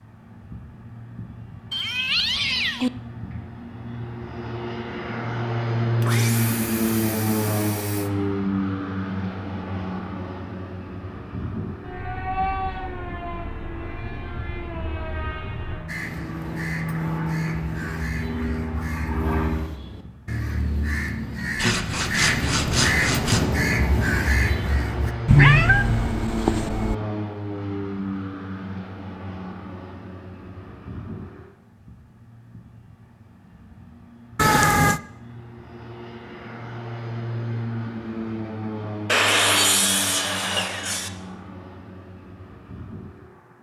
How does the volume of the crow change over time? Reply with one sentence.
The loudness of the crow goes up.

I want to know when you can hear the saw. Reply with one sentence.
The saw can be heard from 6.0 to 8.1 s, from 21.6 to 23.4 s and from 39.0 to 41.1 s.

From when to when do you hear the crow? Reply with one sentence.
You can hear the crow from 15.8 to 25.1 s.